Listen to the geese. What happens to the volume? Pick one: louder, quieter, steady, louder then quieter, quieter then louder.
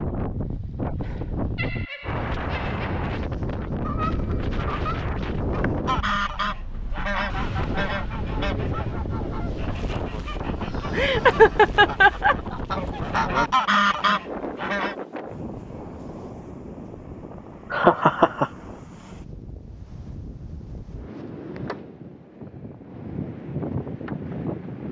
quieter then louder.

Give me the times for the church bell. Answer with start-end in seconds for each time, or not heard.
not heard.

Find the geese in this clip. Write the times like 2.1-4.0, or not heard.
3.6-14.9.